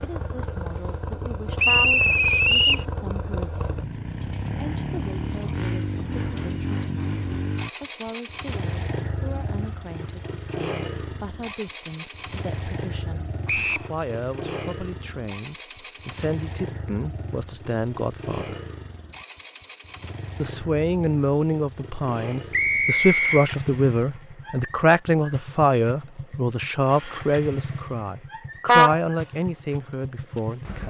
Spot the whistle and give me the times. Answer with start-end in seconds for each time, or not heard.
1.6-2.9, 13.4-13.9, 22.5-23.5.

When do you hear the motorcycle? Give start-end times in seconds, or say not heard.
0.0-30.8.